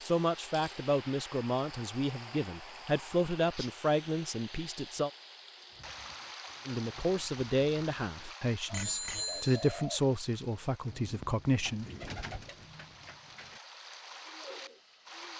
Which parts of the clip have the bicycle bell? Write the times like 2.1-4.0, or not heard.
8.7-9.8.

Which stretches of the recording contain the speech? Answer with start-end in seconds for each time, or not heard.
0.0-5.1, 6.7-11.9.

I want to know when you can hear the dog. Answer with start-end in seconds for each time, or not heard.
not heard.